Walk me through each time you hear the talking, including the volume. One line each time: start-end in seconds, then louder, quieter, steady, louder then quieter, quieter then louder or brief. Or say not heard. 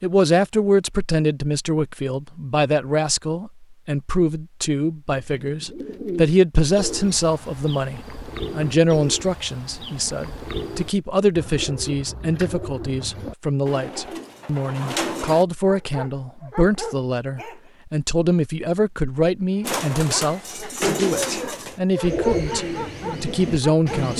0.0-24.1 steady.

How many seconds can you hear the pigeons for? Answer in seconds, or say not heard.
15 s.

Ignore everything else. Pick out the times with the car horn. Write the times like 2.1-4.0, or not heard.
not heard.